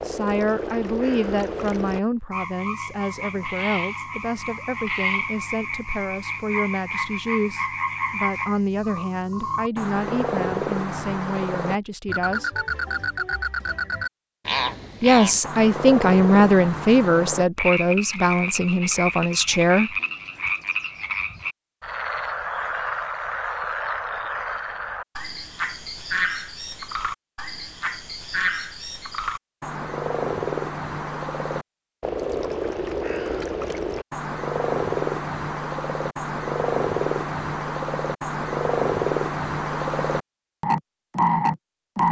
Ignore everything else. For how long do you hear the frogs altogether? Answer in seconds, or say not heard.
42 s.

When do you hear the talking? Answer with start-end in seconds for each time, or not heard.
0.0-12.5, 15.0-19.9.